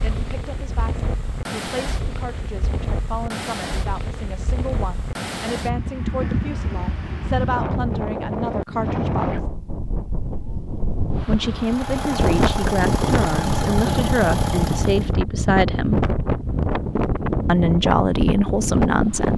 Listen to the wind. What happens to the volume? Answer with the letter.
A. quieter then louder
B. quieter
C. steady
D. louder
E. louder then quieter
D.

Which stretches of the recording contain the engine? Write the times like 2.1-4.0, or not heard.
11.6-15.2.